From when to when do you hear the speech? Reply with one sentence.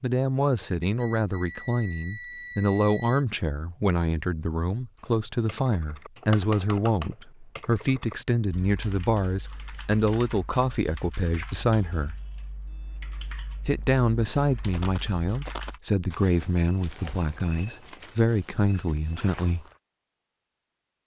You can hear the speech from 0.0 to 12.2 s and from 13.7 to 19.6 s.